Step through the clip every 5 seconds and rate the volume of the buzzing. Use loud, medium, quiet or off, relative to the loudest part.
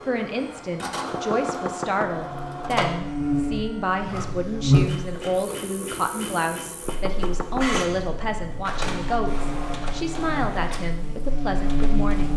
loud, quiet, medium.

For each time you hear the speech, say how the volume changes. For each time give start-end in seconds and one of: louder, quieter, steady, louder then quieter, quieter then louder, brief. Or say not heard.
0.1-12.3 steady.